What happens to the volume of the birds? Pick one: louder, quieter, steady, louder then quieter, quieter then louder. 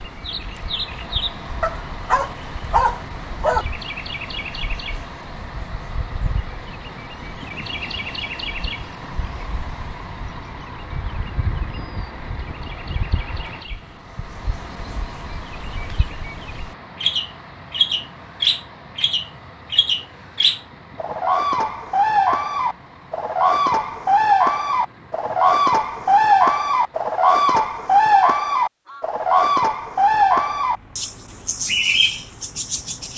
louder.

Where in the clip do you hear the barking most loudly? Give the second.
3 s.